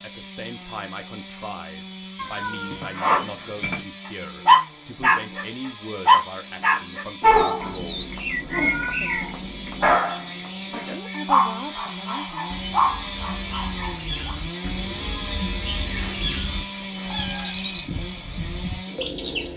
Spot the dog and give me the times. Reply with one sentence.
You can hear the dog from 3.0 to 3.8 s, from 4.5 to 5.5 s and from 6.0 to 14.3 s.